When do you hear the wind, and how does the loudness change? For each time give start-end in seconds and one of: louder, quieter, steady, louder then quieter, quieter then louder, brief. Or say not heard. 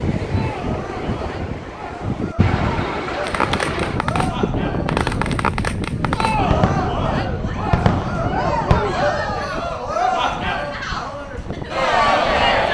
0.0-12.6 quieter.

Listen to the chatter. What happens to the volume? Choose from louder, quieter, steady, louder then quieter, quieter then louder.
louder.